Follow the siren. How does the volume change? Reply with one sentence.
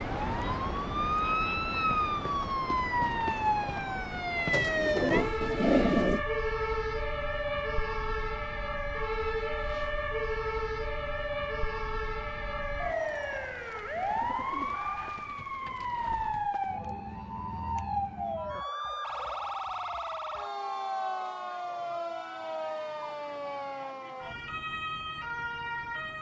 The loudness of the siren goes down.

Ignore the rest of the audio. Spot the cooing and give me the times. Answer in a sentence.
The cooing can be heard from 4.5 to 6.2 s and from 13.9 to 16.5 s.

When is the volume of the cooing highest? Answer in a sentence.
The volume of the cooing peaks at 6 seconds.